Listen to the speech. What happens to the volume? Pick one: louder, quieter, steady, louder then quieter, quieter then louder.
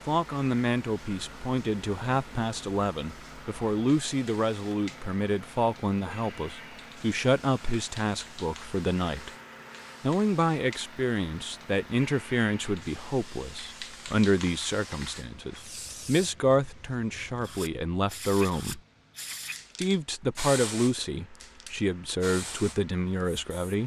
steady.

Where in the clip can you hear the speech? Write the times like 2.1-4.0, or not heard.
0.1-9.3, 10.0-18.8, 19.8-23.8.